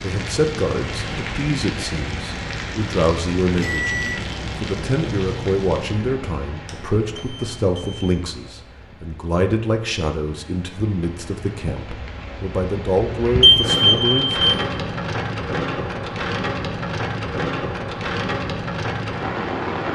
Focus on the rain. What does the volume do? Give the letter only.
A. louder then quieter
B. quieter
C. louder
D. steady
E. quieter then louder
E.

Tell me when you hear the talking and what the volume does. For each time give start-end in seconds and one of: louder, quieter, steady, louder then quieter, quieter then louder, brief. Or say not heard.
0.0-14.5 steady.